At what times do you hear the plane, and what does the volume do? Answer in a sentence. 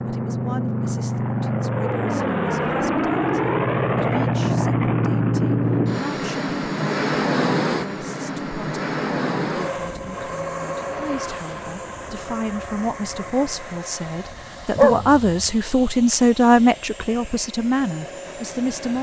The plane can be heard from 0.0 to 18.9 s, getting quieter.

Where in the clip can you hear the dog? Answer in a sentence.
You can hear the dog from 14.8 to 15.4 s.